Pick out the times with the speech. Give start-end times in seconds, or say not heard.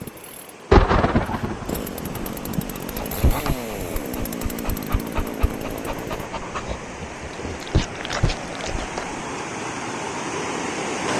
not heard.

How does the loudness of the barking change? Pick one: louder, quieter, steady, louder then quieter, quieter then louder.
quieter then louder.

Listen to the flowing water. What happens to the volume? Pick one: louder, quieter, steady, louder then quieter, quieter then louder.
louder.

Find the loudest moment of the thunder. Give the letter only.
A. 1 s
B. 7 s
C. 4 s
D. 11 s
A.